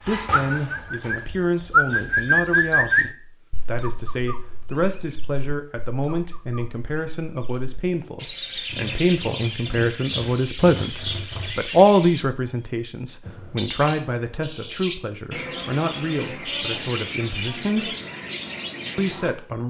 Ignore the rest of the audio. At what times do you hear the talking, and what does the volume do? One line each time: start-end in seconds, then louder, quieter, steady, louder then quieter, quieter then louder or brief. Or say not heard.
0.1-17.9 louder then quieter
18.9-19.6 brief.